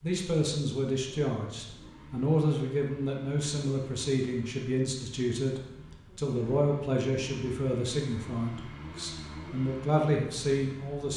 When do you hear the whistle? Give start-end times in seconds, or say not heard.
not heard.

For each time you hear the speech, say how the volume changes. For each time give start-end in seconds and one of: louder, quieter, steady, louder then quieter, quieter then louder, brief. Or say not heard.
0.0-11.1 steady.